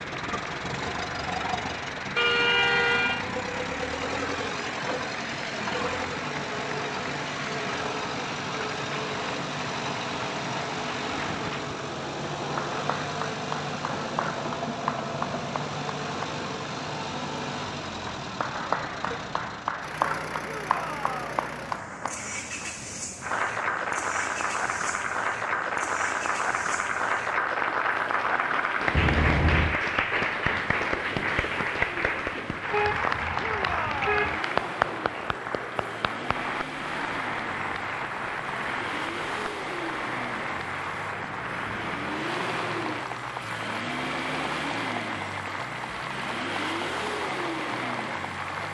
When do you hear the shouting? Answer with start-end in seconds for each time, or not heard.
20.4-21.4, 33.4-34.3.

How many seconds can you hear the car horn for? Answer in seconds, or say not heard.
4 s.